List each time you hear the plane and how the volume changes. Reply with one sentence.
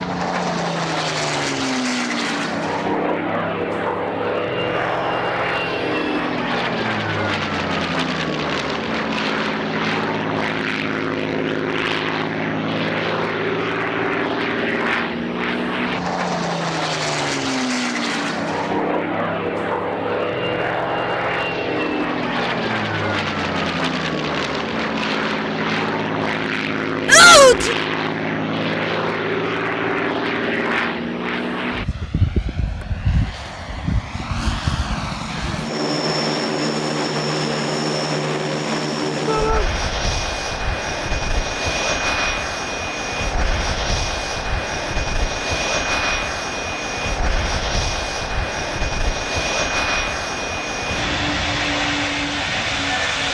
The plane can be heard from 0.0 to 53.2 s, at a steady volume.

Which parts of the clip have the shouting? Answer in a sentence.
The shouting can be heard from 4.5 to 6.3 s, from 27.1 to 27.8 s and from 39.2 to 39.7 s.